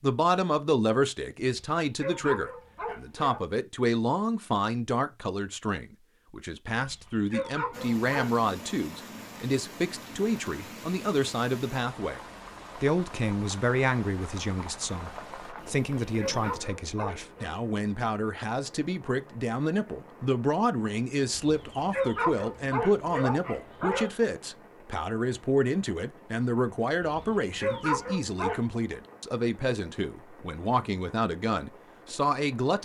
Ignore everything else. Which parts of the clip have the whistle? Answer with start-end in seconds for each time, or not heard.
not heard.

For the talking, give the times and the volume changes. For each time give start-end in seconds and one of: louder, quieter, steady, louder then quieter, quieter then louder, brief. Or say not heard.
0.0-32.8 steady.